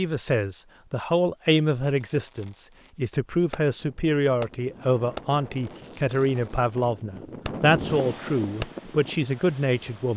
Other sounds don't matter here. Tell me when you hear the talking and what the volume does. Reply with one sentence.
The talking can be heard from 0.0 to 10.1 s, at a steady volume.